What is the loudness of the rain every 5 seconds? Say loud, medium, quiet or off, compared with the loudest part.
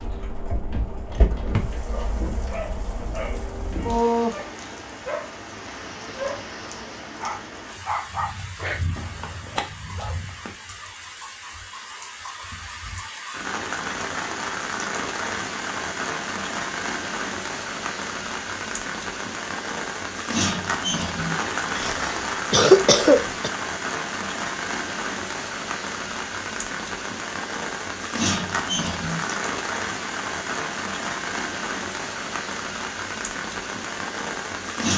loud, medium, medium, loud, loud, loud, loud.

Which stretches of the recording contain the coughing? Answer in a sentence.
The coughing can be heard from 21.8 to 23.5 s.